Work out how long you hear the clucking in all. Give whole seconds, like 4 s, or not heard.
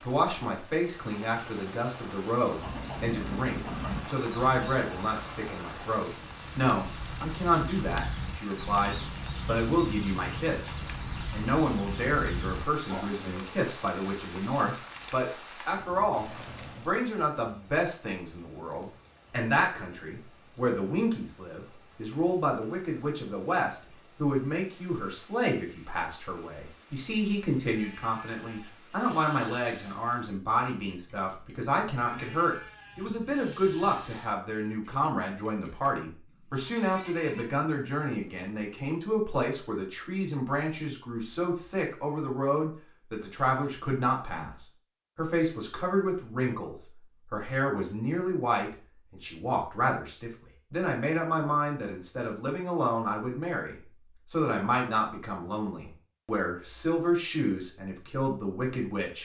11 s.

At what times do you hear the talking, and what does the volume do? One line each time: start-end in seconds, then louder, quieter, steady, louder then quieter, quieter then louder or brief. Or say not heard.
0.1-59.2 steady.